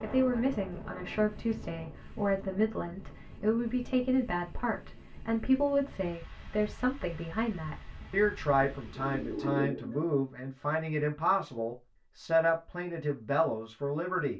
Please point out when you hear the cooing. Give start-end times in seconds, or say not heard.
8.7-10.1.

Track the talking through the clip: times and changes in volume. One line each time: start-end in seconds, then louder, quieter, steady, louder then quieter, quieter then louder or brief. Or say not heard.
0.0-14.3 steady.